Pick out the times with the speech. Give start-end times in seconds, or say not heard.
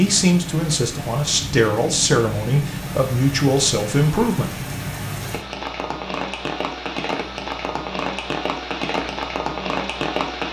0.0-4.6.